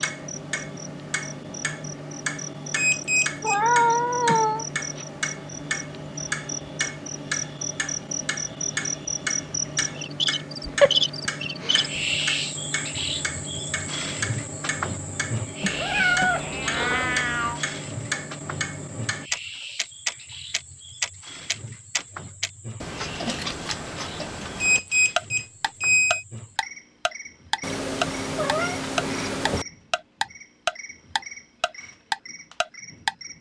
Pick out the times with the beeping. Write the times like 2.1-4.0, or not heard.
2.8-3.6, 24.6-26.2.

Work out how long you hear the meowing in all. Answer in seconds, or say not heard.
5 s.